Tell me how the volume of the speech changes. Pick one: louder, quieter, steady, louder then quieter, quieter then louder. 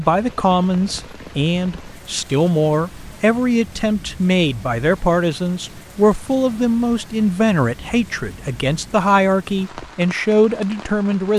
steady.